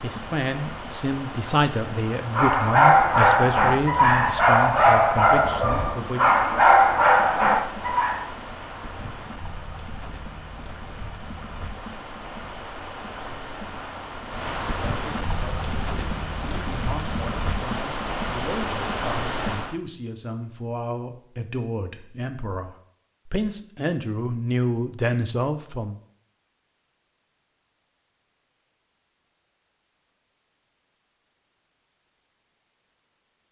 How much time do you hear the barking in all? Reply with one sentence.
You can hear the barking for 6 seconds altogether.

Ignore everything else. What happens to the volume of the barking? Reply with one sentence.
The loudness of the barking stays about the same.